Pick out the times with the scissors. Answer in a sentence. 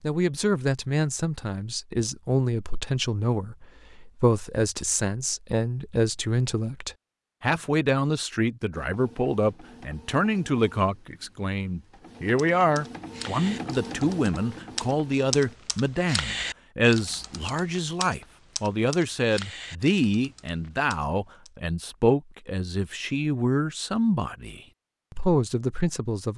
The scissors can't be heard in this clip.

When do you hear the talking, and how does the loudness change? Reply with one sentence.
The talking can be heard from 0.0 to 26.3 s, at a steady volume.